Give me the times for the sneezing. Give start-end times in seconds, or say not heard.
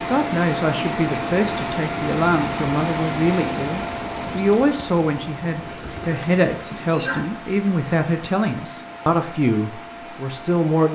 6.7-7.2.